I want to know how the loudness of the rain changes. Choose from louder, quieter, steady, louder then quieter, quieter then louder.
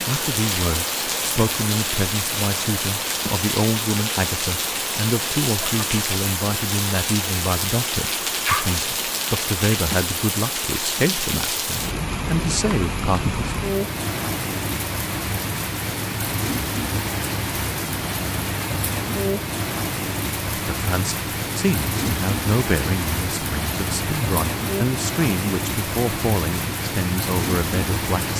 steady.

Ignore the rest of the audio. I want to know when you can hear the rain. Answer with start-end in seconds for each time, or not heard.
0.0-28.3.